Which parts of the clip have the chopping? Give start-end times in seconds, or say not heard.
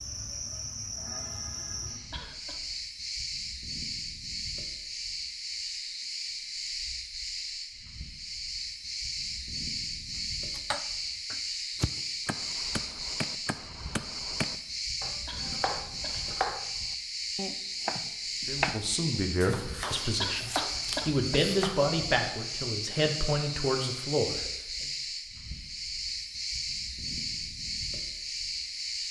10.5-21.9.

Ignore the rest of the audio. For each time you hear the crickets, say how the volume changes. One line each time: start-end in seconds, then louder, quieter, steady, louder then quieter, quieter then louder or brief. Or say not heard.
0.0-29.0 steady.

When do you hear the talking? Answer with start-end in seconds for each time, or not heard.
18.4-24.4.